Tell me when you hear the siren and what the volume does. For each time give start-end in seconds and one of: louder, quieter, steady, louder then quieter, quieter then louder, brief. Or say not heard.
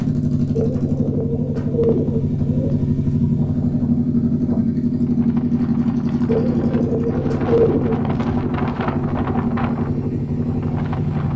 not heard.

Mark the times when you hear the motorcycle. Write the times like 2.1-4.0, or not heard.
0.0-11.3.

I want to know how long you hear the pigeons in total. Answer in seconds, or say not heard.
4 s.